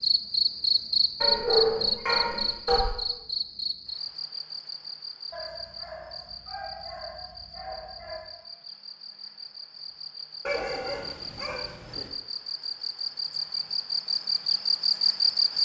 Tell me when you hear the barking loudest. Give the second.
2 s.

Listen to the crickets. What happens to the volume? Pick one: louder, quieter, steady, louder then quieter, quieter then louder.
quieter then louder.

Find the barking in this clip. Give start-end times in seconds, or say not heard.
1.2-2.9, 5.3-8.3, 10.4-12.1.